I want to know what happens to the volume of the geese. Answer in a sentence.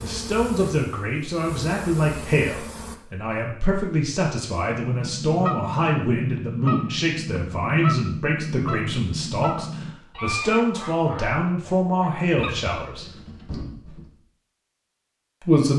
The volume of the geese goes down.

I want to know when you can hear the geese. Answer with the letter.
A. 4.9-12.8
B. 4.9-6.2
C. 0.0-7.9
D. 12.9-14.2
A.